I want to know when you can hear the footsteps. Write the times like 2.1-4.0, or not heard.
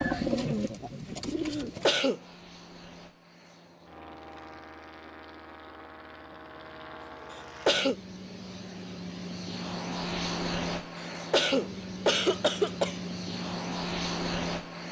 not heard.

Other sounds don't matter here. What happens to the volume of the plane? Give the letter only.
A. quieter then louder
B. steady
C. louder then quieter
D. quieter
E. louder
E.